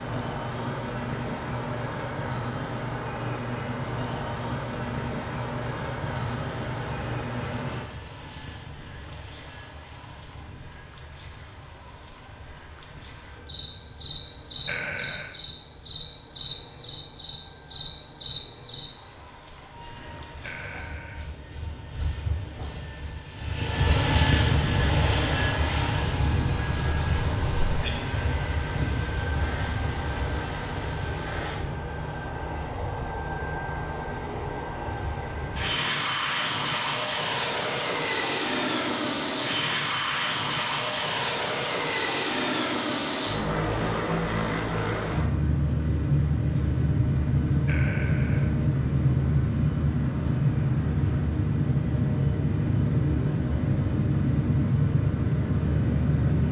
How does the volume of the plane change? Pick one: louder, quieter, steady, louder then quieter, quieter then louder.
louder.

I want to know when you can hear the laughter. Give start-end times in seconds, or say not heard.
14.7-15.3, 20.4-21.2, 47.6-48.5.